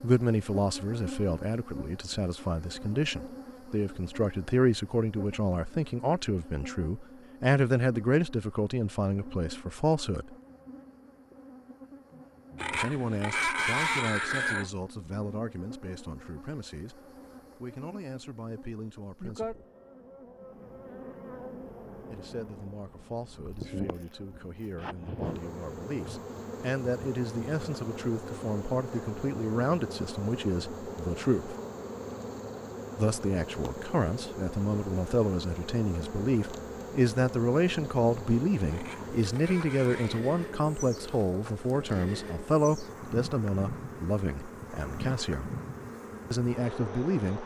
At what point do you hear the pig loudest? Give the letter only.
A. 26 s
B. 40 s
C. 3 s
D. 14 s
D.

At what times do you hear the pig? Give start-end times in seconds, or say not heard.
12.6-14.7, 38.7-40.2.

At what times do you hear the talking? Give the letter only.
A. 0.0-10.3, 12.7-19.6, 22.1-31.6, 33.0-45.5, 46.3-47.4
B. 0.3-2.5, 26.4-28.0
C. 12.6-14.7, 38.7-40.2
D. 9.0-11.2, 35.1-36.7
A.